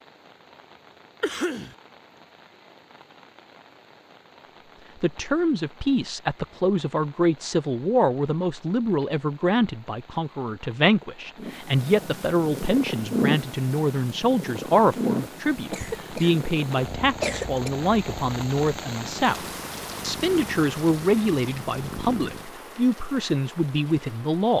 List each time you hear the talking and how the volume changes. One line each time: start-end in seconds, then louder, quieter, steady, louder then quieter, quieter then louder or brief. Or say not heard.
5.0-24.5 steady.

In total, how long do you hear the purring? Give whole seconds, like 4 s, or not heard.
11 s.